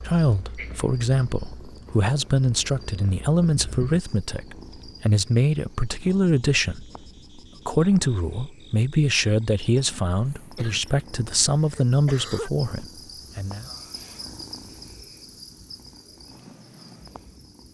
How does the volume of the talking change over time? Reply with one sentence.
The loudness of the talking stays about the same.